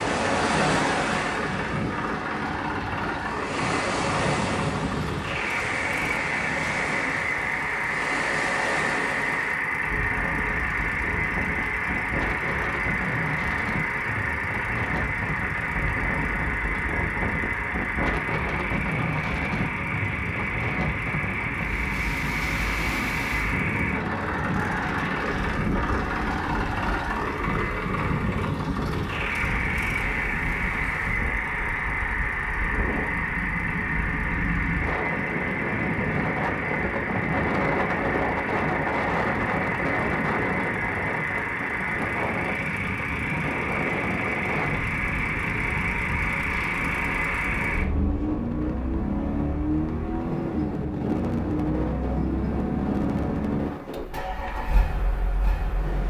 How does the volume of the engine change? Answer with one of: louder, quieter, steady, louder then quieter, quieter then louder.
steady.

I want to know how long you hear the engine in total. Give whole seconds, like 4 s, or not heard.
56 s.